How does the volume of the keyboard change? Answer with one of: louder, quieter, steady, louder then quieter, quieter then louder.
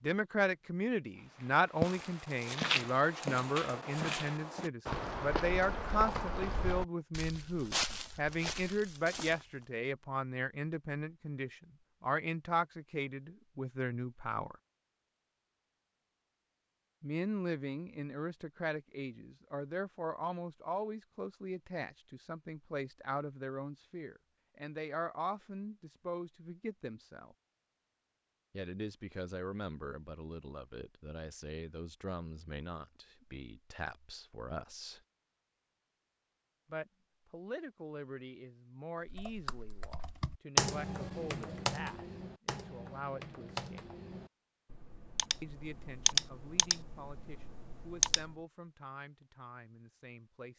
quieter then louder.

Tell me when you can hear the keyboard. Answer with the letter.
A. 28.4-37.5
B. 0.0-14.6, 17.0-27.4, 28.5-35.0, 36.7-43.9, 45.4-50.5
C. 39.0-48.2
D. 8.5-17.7
C.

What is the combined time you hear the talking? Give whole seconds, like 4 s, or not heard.
44 s.